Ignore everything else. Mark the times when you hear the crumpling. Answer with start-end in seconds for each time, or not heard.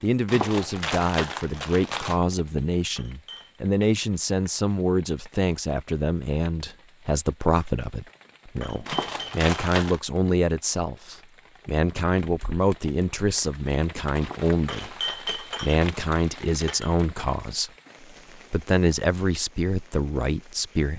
0.2-2.2, 8.8-10.0, 14.2-16.6.